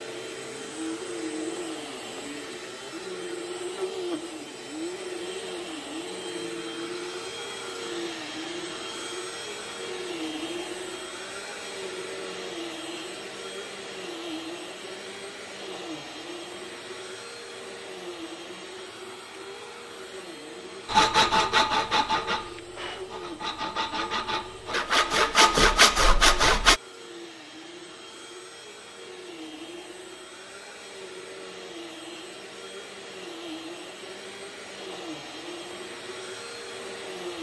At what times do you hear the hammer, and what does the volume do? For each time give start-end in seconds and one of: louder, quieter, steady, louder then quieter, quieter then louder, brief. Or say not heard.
not heard.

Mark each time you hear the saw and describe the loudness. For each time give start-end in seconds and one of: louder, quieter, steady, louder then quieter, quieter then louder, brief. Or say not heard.
20.9-26.8 quieter then louder.